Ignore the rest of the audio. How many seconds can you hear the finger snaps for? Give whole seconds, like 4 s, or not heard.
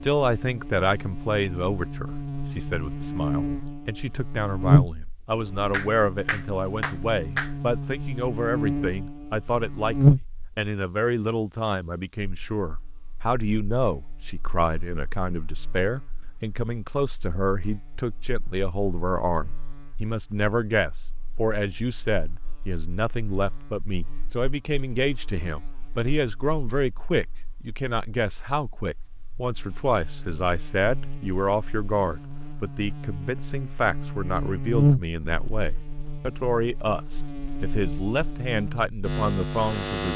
2 s.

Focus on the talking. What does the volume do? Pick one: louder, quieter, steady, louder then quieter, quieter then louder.
steady.